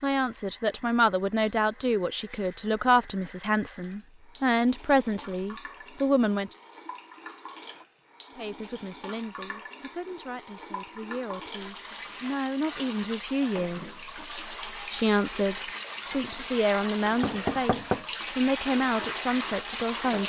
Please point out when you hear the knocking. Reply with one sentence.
The knocking can be heard from 17.1 to 18.1 s.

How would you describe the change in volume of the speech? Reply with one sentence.
The loudness of the speech goes down, then up.